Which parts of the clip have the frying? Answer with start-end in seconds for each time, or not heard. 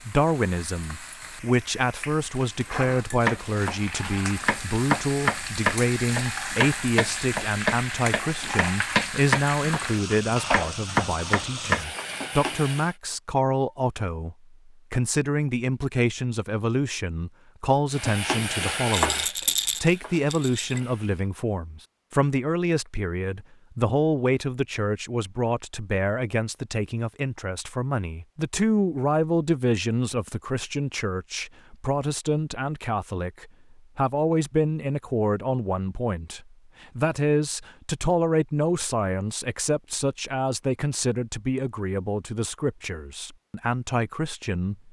0.0-12.9, 17.9-21.3.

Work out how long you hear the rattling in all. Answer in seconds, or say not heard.
2 s.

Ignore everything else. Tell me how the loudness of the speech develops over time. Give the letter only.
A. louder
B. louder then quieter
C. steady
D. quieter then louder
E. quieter
C.